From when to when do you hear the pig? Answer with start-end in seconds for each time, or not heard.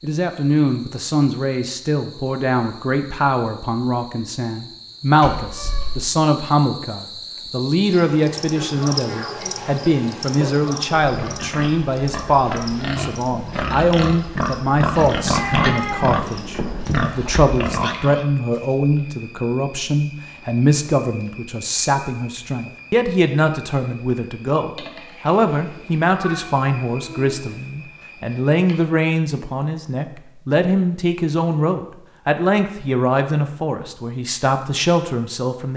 9.5-18.2.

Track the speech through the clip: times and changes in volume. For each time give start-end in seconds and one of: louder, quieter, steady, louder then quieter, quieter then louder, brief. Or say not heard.
0.0-35.7 steady.